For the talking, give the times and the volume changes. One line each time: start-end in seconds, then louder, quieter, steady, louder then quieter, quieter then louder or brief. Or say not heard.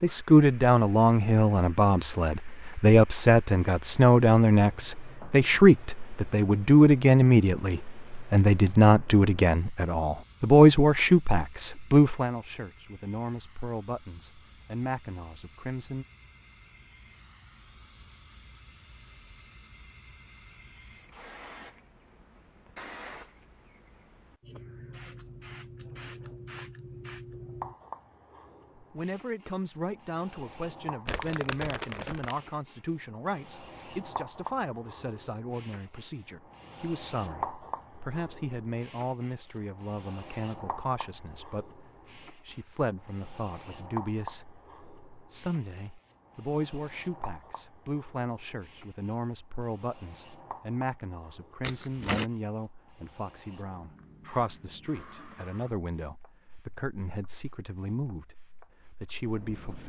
0.0-16.1 quieter
28.8-59.8 steady.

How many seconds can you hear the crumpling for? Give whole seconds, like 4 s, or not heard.
3 s.